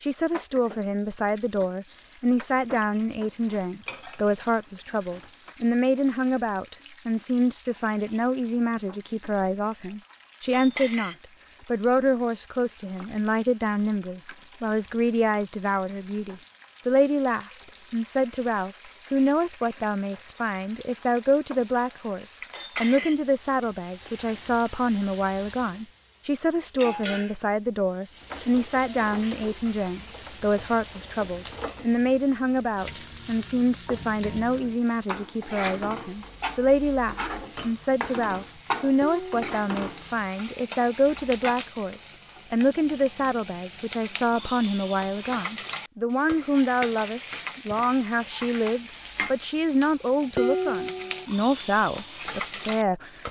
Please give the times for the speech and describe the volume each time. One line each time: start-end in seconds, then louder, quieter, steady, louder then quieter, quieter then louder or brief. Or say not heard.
0.0-53.2 steady.